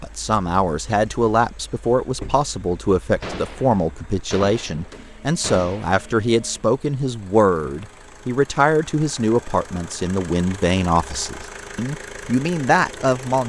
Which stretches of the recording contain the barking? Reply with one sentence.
You can't hear the barking here.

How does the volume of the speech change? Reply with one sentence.
The loudness of the speech stays about the same.